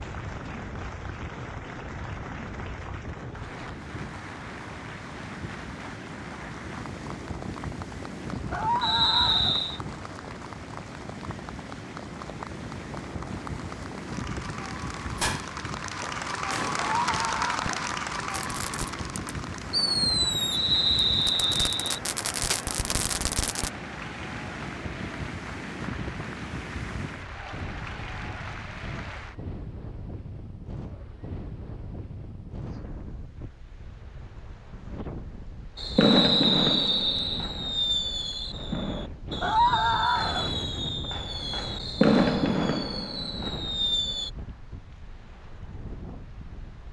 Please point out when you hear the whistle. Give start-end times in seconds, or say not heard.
8.8-9.8, 20.5-22.0, 36.0-37.5.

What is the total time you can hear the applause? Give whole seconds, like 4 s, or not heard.
29 s.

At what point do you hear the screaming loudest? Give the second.
40 s.